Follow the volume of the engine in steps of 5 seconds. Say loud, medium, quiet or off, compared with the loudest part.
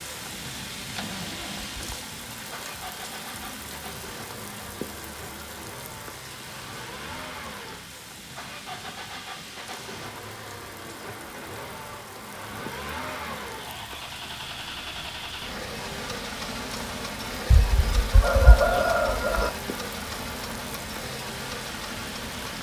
medium, medium, loud, loud, loud.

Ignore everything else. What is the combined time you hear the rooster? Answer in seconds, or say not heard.
2 s.